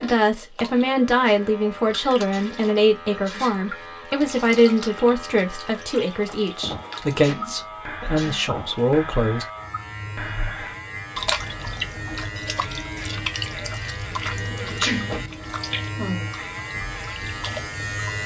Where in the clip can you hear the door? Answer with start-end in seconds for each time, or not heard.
13.9-15.4.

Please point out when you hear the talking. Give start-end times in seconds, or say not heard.
0.0-9.4.